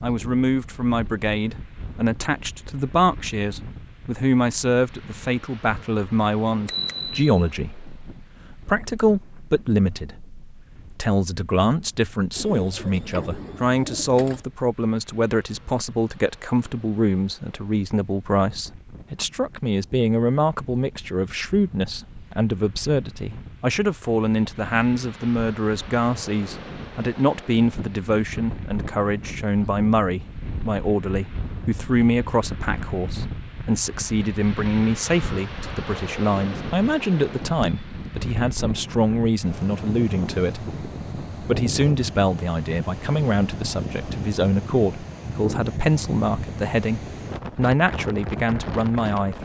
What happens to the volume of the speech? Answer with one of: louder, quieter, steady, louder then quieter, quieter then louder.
steady.